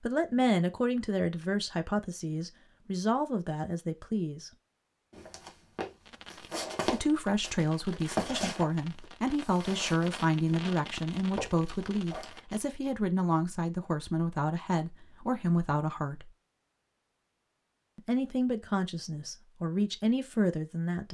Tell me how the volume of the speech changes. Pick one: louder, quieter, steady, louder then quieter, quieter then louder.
steady.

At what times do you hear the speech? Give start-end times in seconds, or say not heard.
0.0-4.5, 6.8-16.3, 17.9-21.0.